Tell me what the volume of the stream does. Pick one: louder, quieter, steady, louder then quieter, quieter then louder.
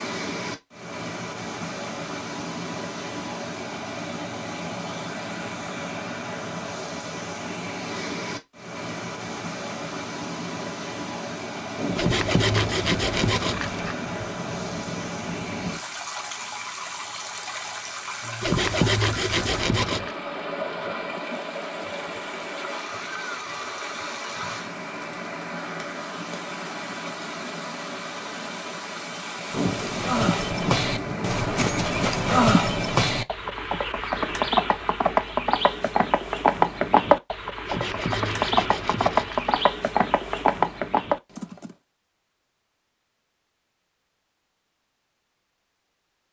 steady.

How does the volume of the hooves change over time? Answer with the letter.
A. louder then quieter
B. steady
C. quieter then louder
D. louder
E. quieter
B.